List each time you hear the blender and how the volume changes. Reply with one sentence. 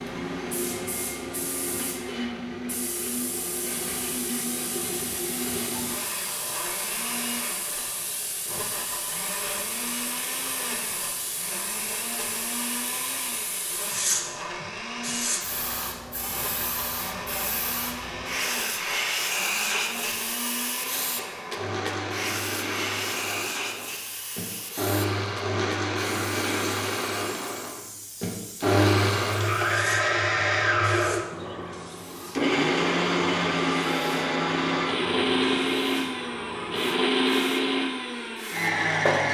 The blender can be heard from 0.0 to 39.2 s, getting louder.